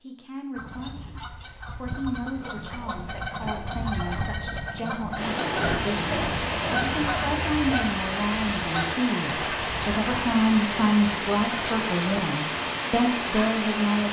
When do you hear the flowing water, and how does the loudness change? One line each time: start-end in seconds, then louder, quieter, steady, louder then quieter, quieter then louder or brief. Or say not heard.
5.1-14.0 steady.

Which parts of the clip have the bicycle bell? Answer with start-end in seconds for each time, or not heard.
3.9-4.8.